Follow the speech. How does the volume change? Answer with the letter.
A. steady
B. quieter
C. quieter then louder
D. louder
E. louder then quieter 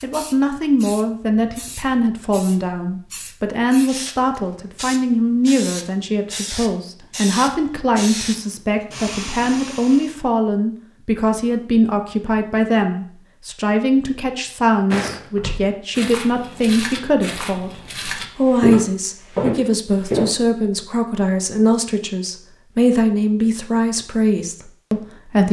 A.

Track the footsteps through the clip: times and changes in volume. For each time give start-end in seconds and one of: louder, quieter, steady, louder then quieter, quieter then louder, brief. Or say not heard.
14.9-20.3 louder.